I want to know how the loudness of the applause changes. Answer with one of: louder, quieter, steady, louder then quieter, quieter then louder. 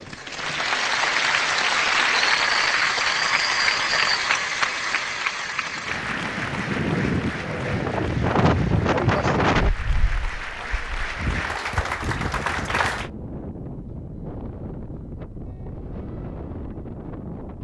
quieter then louder.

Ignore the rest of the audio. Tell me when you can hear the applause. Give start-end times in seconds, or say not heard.
0.0-13.1.